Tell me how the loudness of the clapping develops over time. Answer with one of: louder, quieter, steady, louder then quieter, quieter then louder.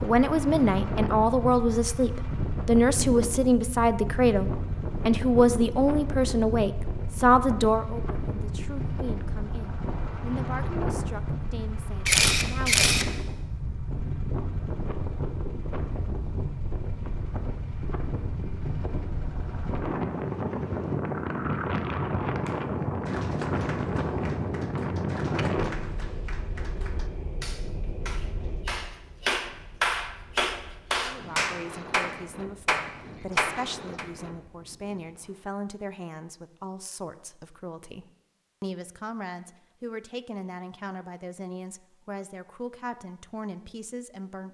louder.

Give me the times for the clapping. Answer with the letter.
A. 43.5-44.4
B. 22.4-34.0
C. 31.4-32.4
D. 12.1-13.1
B.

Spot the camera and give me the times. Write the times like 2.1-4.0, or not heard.
12.1-13.1.